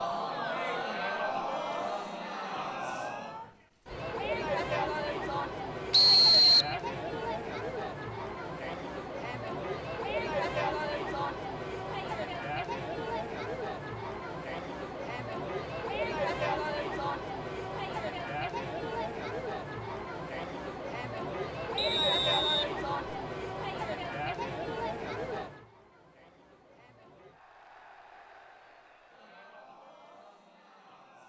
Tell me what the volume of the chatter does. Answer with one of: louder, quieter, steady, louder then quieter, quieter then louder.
quieter.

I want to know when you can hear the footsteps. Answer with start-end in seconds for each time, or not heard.
not heard.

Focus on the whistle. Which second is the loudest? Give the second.
6 s.